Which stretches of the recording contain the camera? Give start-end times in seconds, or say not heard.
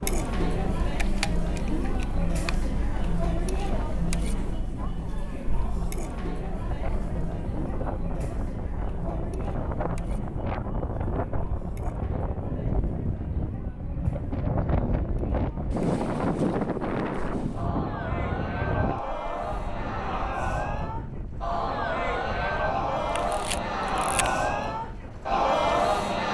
0.8-2.5, 23.1-24.3.